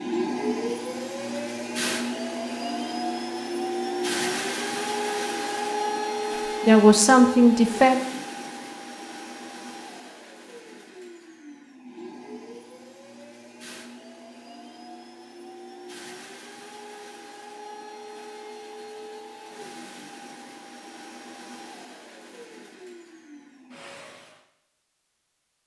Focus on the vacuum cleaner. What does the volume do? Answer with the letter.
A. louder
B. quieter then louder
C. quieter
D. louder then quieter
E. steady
C.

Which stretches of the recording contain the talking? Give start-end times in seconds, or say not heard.
6.6-8.0.